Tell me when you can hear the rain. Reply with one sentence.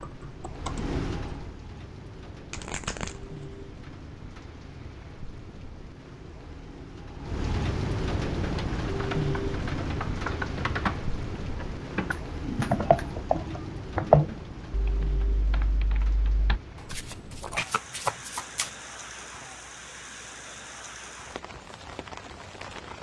The rain can be heard from 0.0 to 22.9 s.